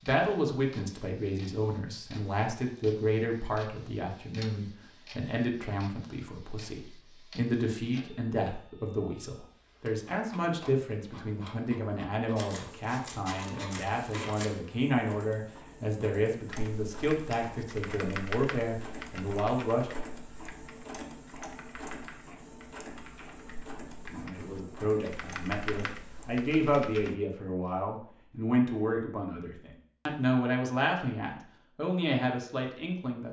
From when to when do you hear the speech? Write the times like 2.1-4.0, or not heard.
0.0-19.9, 24.1-33.2.